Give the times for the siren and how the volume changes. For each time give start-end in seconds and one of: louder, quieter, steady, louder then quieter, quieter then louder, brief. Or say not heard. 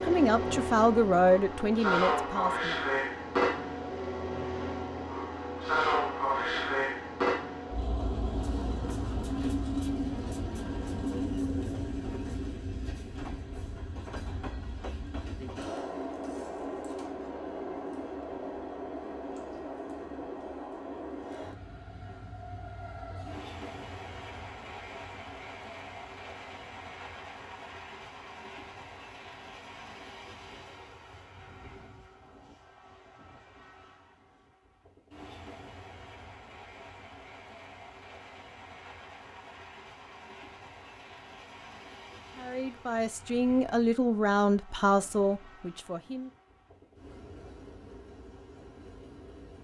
not heard.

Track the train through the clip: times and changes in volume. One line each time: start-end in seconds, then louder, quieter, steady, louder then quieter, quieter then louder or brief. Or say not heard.
0.0-49.5 quieter.